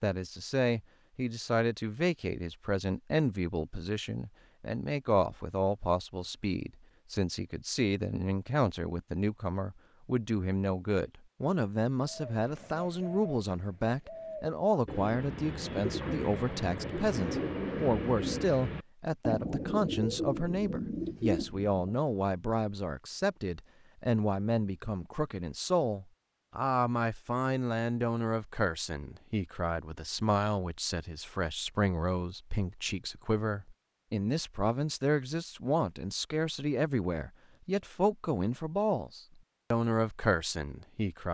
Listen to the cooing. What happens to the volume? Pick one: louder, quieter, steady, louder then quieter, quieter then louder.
louder.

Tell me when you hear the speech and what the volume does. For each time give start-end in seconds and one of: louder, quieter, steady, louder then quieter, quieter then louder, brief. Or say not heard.
0.0-41.2 steady.